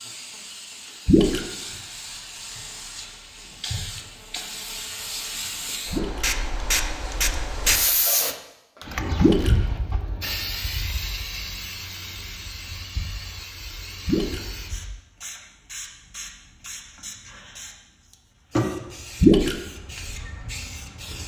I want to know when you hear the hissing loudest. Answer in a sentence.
The volume of the hissing peaks at 8 seconds.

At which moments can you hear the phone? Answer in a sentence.
You can't hear the phone here.